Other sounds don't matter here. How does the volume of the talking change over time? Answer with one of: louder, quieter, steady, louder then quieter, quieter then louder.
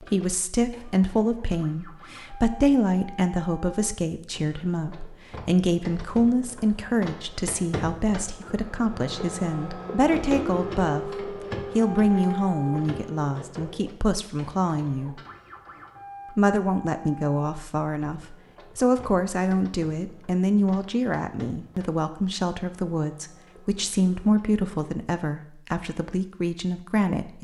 steady.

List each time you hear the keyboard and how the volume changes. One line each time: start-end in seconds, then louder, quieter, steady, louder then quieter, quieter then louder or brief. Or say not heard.
not heard.